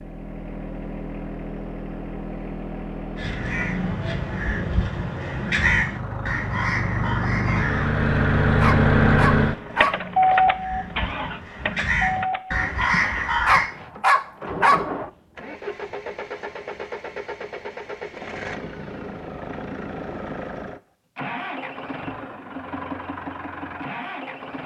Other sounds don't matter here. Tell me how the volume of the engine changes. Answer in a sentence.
The volume of the engine goes up, then down.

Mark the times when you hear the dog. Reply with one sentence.
The dog can be heard from 8.6 to 9.9 s and from 13.4 to 14.8 s.